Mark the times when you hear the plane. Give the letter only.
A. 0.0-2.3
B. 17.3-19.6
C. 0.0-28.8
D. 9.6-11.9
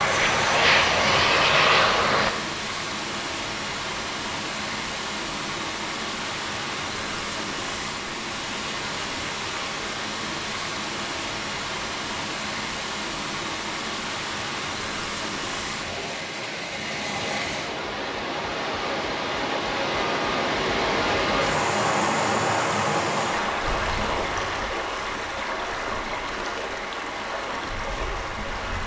A.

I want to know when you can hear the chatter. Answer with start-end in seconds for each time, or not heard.
not heard.